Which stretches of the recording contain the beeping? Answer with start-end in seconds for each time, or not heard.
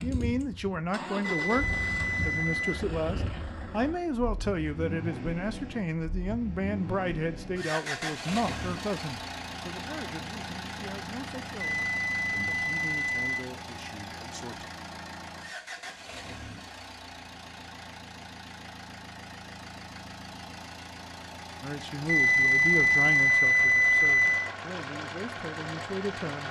1.2-2.8, 11.7-13.4, 22.1-24.5.